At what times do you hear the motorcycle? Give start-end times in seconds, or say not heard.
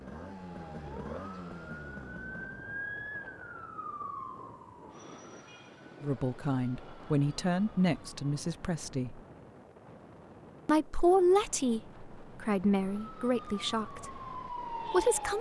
0.0-2.8.